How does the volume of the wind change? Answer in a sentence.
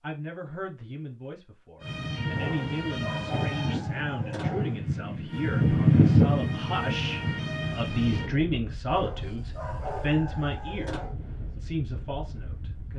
The volume of the wind goes up, then down.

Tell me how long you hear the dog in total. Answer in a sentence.
You can hear the dog for 5 seconds altogether.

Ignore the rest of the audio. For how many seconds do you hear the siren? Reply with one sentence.
You can hear the siren for 5 seconds altogether.